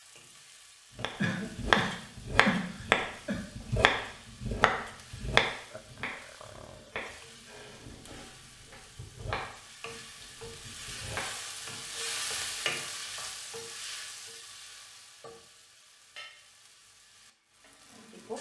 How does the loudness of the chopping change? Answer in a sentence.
The volume of the chopping goes down, then up.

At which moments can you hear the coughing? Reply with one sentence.
You can hear the coughing from 1.2 to 3.4 s.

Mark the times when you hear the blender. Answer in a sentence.
The blender can't be heard in this clip.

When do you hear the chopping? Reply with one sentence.
You can hear the chopping from 0.9 to 11.3 s.